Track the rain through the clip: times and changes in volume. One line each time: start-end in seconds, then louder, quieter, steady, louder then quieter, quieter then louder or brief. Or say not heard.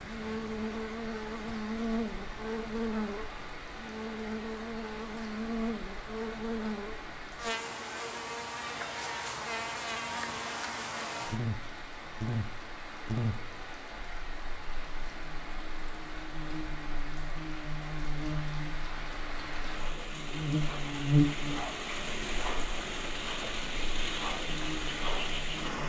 0.0-25.8 louder.